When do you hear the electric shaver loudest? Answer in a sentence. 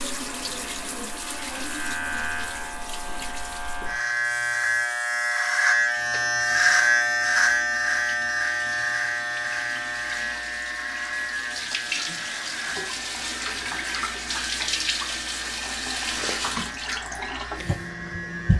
The volume of the electric shaver peaks at 7 seconds.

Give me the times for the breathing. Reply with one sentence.
You can't hear the breathing here.